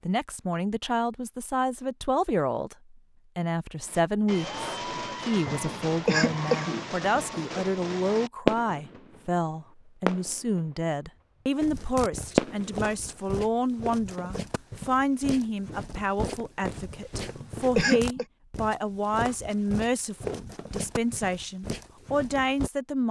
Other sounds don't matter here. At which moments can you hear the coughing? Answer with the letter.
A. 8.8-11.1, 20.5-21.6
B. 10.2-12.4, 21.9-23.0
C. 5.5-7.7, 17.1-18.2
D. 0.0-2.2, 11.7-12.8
C.